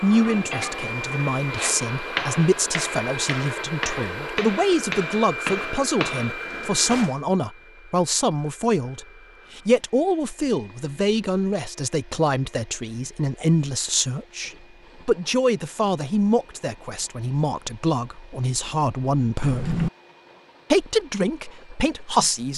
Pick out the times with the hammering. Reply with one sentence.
You can hear the hammering from 0.1 to 6.4 s.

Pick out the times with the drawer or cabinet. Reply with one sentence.
The drawer or cabinet can be heard from 6.4 to 7.2 s and from 19.4 to 19.9 s.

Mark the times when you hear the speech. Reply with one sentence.
The speech can be heard from 0.0 to 19.7 s and from 20.7 to 22.5 s.